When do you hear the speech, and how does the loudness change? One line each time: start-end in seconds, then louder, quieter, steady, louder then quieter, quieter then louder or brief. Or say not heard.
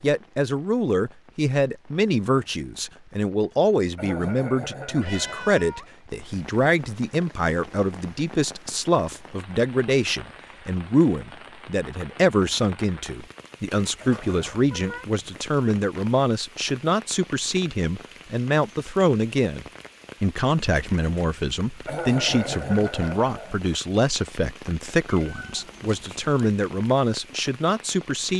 0.0-28.3 steady.